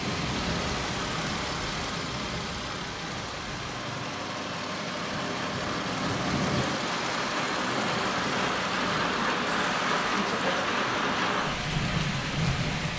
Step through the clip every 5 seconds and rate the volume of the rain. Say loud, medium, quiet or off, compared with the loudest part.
medium, loud, loud.